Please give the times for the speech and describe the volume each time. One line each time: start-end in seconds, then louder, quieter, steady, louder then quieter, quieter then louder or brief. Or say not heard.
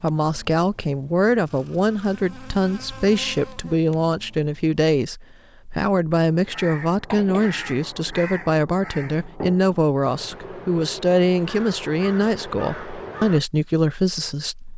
0.0-14.7 steady.